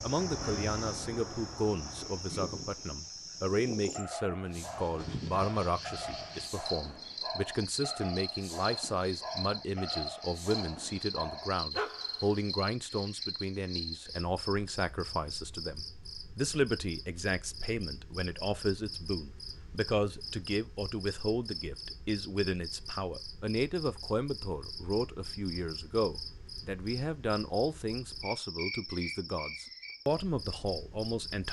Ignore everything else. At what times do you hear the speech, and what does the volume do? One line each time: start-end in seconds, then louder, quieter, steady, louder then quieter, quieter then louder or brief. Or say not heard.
0.0-31.4 steady.